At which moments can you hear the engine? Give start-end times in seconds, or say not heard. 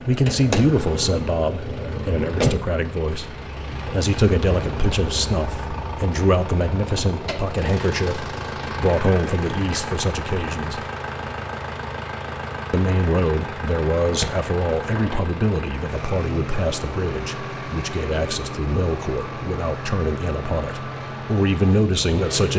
0.0-22.5.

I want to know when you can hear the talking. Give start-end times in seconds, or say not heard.
0.1-10.8, 12.7-22.5.